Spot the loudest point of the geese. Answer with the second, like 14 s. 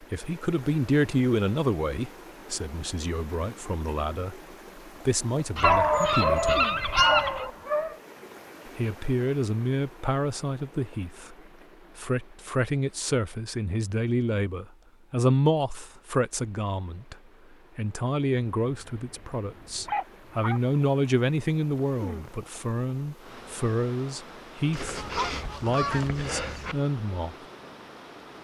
7 s.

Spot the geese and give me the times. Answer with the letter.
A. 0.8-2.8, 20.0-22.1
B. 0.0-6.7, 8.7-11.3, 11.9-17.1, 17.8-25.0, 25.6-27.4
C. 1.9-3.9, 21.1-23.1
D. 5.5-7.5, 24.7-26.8
D.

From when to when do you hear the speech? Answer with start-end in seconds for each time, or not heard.
0.0-6.7, 8.7-11.3, 11.9-17.1, 17.8-25.0, 25.6-27.4.